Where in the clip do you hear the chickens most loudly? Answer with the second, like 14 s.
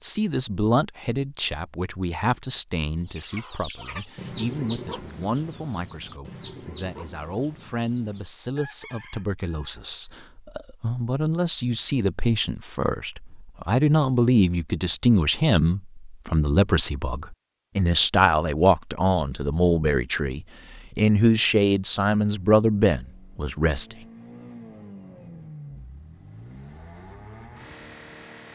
5 s.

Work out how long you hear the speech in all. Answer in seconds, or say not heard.
24 s.